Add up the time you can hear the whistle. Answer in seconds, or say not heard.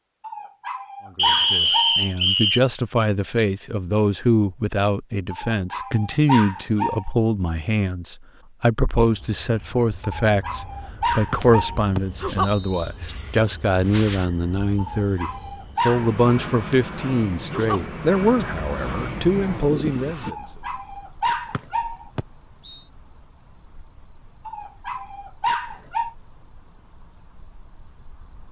4 s.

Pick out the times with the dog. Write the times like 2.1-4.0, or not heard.
0.2-2.0, 5.3-7.2, 10.2-11.8, 14.8-16.1, 20.2-22.1, 24.4-26.1.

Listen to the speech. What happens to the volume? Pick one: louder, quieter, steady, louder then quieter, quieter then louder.
steady.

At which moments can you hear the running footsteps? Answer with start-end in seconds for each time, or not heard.
not heard.